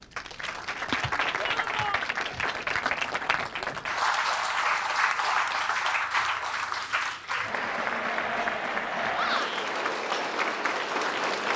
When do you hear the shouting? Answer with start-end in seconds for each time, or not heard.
1.4-2.0, 9.1-9.7.